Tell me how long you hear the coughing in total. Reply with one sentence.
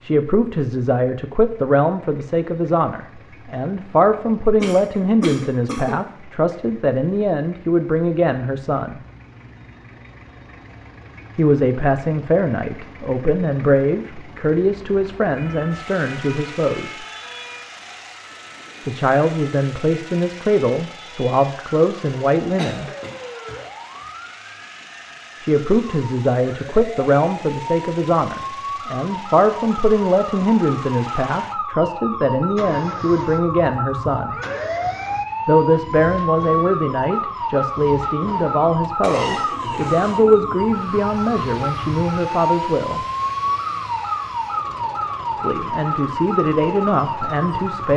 The coughing can be heard for 4 seconds in total.